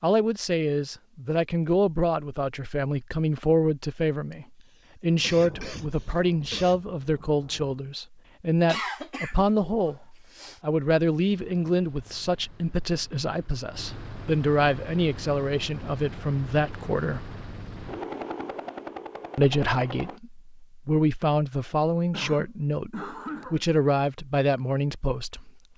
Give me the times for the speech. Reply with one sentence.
You can hear the speech from 0.0 to 17.2 s and from 19.4 to 25.5 s.